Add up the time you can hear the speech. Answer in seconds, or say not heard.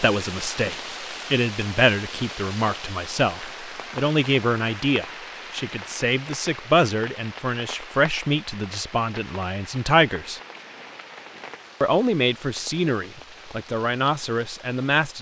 14 s.